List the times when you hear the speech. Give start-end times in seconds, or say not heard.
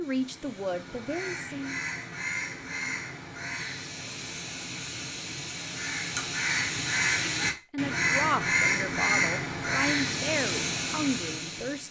0.0-1.8, 7.7-11.8.